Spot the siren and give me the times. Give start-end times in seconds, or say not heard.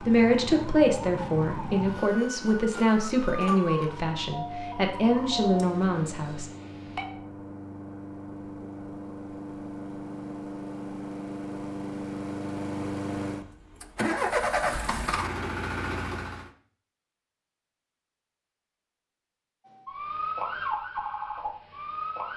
0.0-7.0, 19.6-22.3.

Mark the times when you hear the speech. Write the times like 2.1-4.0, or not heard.
0.0-6.5.